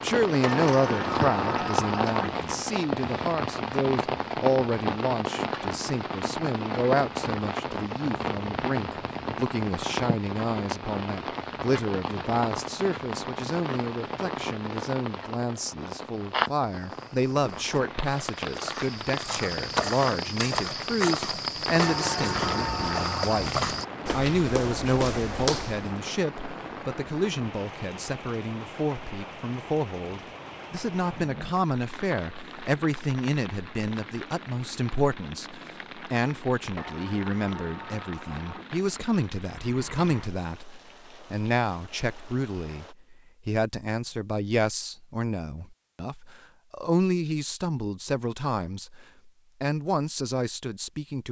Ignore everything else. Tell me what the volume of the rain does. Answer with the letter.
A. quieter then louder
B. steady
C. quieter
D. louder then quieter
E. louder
C.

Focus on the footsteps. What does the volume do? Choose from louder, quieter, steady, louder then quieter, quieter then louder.
louder.